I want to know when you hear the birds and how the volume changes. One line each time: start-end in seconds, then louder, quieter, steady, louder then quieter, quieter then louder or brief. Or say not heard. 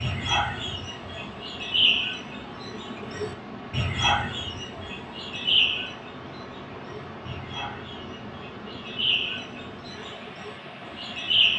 0.0-11.5 quieter then louder.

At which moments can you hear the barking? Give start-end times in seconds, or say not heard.
not heard.